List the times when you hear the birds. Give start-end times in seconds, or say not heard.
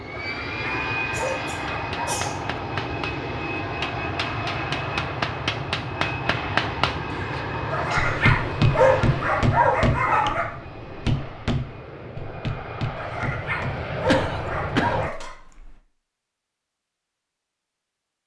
not heard.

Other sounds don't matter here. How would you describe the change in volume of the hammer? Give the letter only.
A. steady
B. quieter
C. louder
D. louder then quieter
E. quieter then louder
D.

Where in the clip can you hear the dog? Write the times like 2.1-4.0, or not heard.
0.1-2.2, 7.7-10.4, 12.9-15.3.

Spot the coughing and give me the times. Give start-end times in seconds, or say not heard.
1.1-2.6, 7.1-8.3, 14.1-15.8.